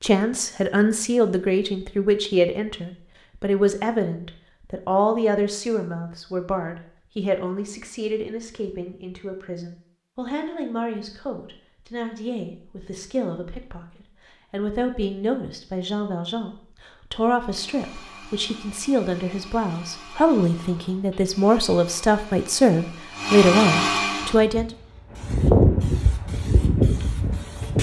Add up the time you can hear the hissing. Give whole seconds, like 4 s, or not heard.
3 s.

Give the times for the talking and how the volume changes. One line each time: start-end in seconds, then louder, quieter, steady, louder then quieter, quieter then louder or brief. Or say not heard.
0.0-24.7 quieter then louder.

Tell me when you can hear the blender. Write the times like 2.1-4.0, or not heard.
17.4-24.4.